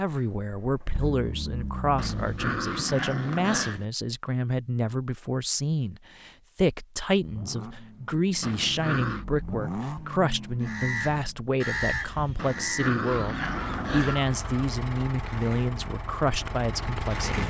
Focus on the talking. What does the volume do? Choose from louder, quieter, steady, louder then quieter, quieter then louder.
steady.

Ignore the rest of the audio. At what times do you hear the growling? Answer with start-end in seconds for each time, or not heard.
1.9-3.9, 8.4-9.2, 12.3-14.2.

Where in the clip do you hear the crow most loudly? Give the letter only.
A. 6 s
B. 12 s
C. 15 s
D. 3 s
B.